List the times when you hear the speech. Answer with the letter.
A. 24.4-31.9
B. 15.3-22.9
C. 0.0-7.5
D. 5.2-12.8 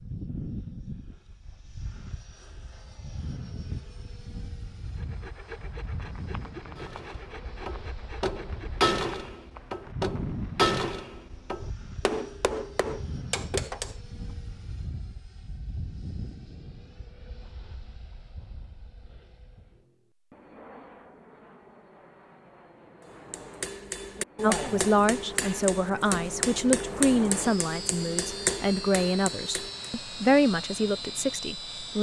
A.